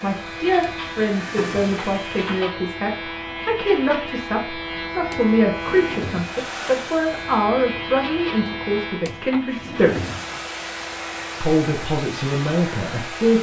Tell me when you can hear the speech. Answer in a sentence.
You can hear the speech from 0.0 to 10.0 s and from 11.4 to 13.3 s.